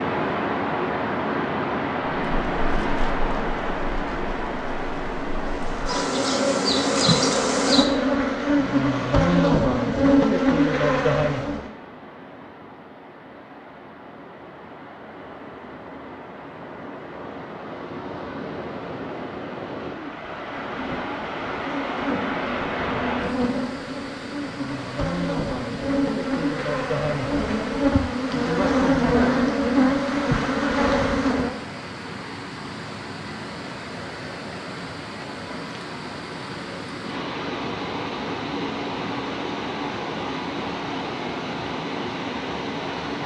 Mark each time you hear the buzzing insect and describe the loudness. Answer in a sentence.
You can hear the buzzing insect from 2.3 to 11.7 s, getting louder; and from 20.6 to 31.6 s, getting louder.